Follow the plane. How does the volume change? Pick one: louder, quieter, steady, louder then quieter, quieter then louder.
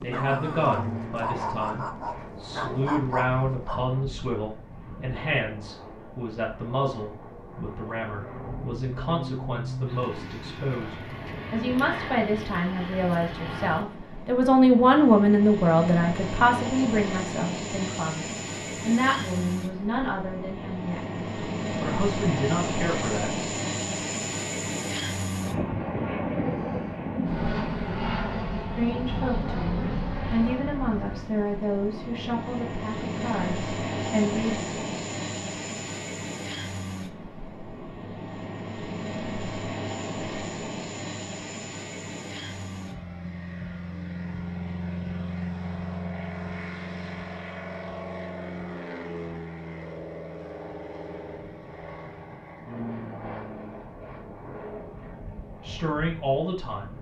louder then quieter.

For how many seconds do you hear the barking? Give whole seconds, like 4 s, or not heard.
4 s.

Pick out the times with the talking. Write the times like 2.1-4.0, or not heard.
0.0-23.4, 28.8-34.5, 55.6-56.9.